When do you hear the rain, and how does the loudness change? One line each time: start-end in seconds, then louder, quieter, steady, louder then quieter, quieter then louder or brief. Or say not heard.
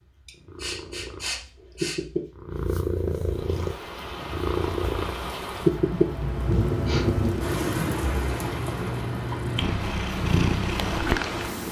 3.2-11.6 louder then quieter.